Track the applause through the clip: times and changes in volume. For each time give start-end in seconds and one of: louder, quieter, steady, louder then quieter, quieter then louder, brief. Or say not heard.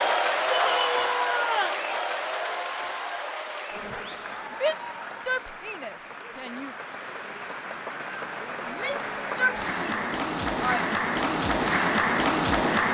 0.0-12.8 quieter then louder.